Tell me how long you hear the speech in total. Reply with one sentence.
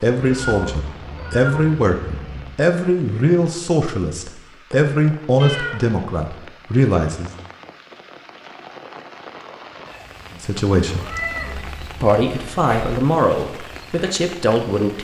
The speech can be heard for 11 seconds in total.